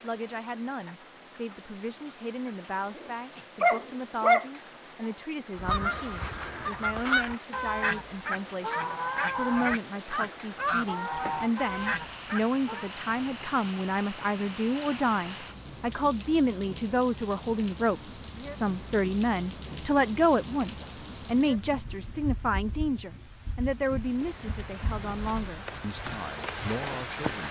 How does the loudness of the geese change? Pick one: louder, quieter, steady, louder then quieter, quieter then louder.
steady.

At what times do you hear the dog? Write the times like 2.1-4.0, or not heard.
3.0-4.5.